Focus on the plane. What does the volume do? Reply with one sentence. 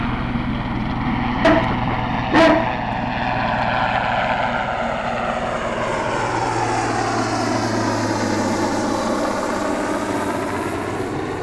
The loudness of the plane stays about the same.